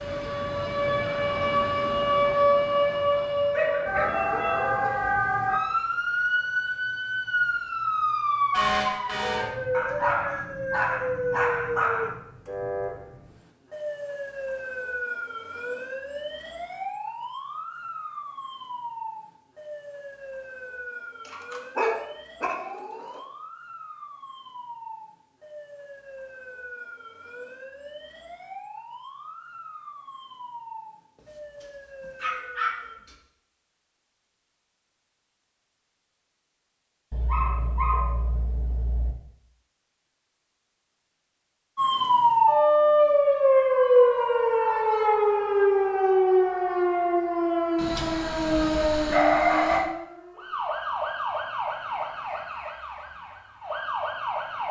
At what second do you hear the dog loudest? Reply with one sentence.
The volume of the dog peaks at 49 seconds.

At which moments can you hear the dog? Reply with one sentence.
You can hear the dog from 3.5 to 5.1 s, from 9.7 to 12.2 s, from 21.2 to 23.2 s, from 32.2 to 32.8 s, from 37.1 to 39.1 s and from 47.8 to 49.9 s.